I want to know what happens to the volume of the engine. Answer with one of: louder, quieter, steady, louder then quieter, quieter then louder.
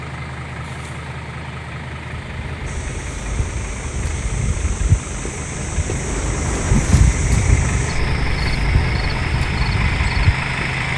louder.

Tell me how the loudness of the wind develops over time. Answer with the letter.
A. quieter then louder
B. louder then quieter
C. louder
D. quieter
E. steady
B.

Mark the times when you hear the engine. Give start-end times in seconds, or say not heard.
0.0-10.9.